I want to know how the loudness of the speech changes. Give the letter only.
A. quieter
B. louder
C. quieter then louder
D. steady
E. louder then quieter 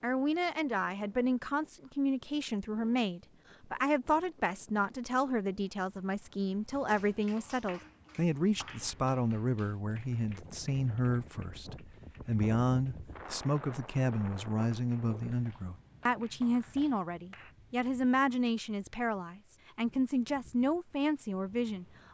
D.